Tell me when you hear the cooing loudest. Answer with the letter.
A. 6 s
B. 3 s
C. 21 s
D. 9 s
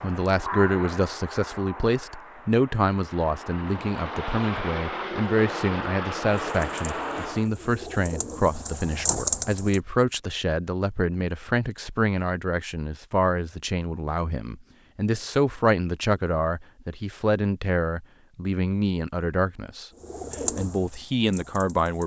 D.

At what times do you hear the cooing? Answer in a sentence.
You can hear the cooing from 6.5 to 9.8 s and from 20.0 to 22.0 s.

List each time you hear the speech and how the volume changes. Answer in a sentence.
You can hear the speech from 0.0 to 19.9 s, at a steady volume; and briefly from 20.6 to 22.0 s.